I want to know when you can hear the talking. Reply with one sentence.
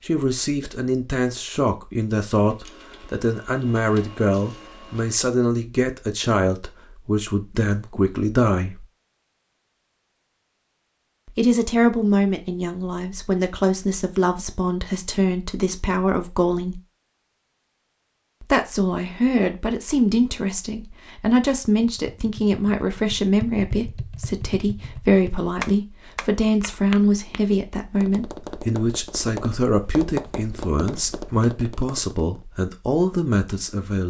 The talking can be heard from 0.0 to 8.8 s, from 11.2 to 16.8 s and from 18.4 to 34.0 s.